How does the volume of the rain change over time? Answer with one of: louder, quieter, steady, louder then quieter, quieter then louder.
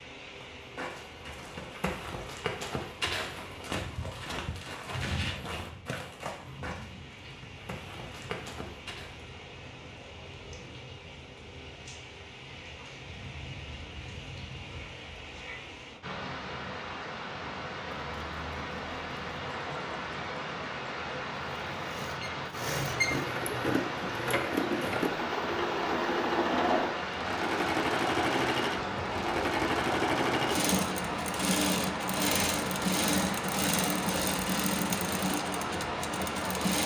louder.